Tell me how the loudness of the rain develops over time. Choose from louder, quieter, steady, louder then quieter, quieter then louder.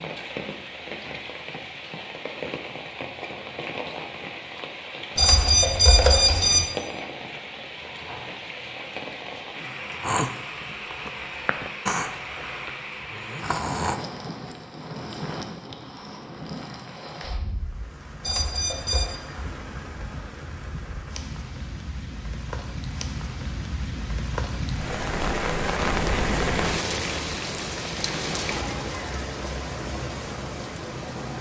louder.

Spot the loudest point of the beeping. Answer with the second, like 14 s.
6 s.